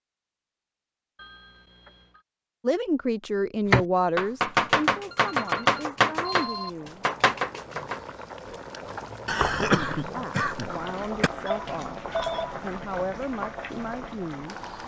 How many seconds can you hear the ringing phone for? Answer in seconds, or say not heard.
4 s.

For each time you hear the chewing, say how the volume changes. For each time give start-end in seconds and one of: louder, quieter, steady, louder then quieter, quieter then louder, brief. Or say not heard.
not heard.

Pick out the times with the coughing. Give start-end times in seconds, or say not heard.
9.2-11.3.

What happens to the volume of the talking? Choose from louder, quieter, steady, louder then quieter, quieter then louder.
quieter.